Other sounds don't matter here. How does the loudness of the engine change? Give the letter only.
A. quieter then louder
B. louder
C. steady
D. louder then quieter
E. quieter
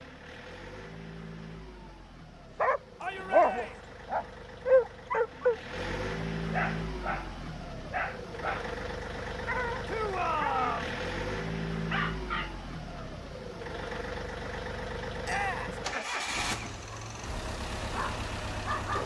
B.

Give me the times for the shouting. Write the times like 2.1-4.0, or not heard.
3.0-3.9, 9.8-10.9, 15.2-15.8.